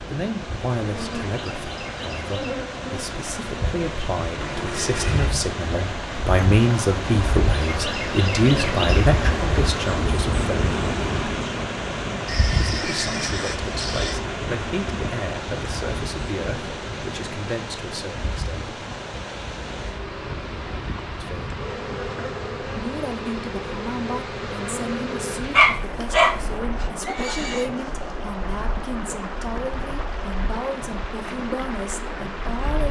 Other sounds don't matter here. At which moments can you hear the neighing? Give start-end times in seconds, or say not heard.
4.3-5.3, 12.2-14.2, 27.0-27.7.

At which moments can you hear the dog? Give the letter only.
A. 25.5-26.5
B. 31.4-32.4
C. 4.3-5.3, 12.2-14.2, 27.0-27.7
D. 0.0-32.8
A.